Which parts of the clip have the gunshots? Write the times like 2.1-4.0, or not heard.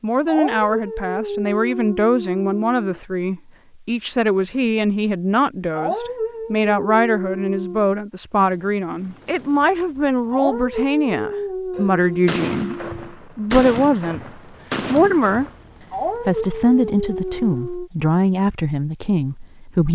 11.8-15.6.